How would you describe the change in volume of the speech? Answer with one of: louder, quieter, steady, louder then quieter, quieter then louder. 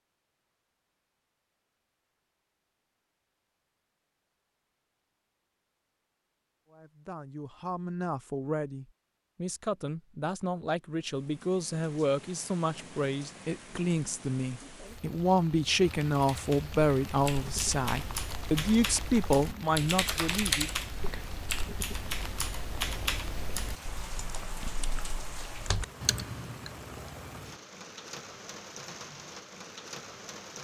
louder.